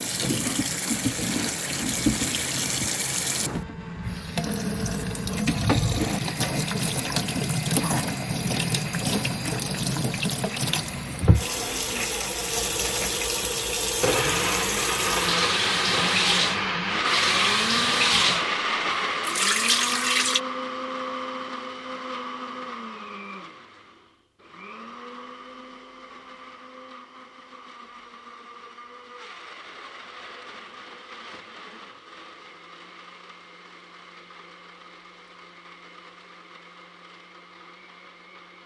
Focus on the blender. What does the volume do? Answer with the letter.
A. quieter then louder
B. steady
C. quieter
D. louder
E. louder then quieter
E.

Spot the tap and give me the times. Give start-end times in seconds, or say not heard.
0.0-20.4.